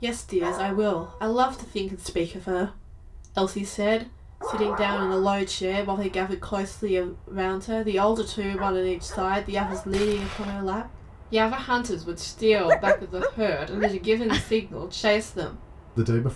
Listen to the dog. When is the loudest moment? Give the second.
13 s.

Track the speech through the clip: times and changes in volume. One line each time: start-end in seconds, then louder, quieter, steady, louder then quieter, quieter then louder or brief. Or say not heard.
0.0-16.3 steady.